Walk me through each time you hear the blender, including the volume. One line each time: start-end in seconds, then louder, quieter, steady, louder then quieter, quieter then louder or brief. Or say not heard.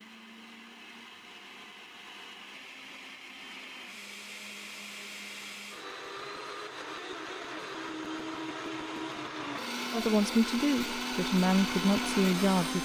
0.0-12.8 louder.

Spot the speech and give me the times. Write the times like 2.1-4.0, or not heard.
9.9-12.8.